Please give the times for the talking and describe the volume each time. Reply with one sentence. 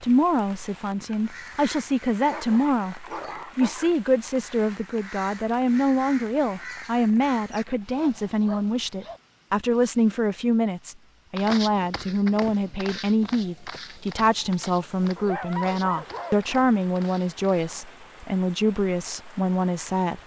The talking can be heard from 0.0 to 20.2 s, at a steady volume.